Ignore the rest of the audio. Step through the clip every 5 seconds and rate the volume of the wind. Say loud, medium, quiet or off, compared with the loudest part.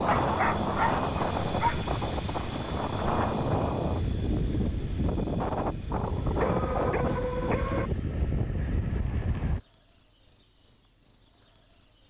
loud, loud, off.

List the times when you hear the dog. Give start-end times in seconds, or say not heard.
0.1-1.9, 6.3-7.9.